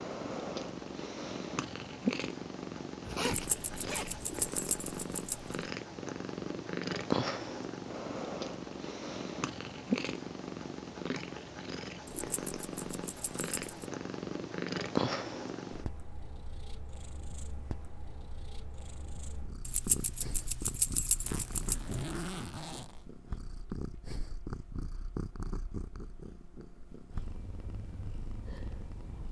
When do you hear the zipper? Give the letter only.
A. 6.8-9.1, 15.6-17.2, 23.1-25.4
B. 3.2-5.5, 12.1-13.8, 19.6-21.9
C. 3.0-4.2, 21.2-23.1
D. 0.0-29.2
C.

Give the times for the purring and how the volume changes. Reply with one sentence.
You can hear the purring from 0.0 to 29.2 s, getting quieter.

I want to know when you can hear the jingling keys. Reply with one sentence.
You can hear the jingling keys from 3.2 to 5.5 s, from 12.1 to 13.8 s and from 19.6 to 21.9 s.